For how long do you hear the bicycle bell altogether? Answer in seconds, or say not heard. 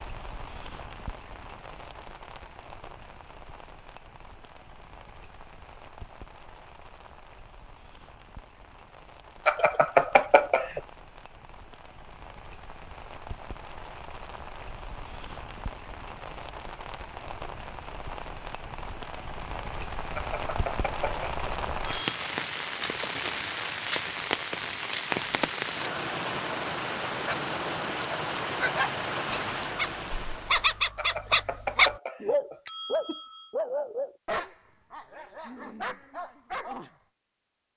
6 s.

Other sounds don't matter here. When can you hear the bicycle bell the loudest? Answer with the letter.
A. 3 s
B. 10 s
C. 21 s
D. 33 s
B.